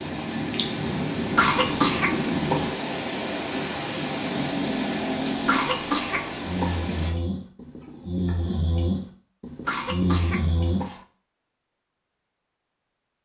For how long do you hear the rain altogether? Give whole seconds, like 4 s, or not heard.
7 s.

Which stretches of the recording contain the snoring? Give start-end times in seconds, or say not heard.
3.4-10.8.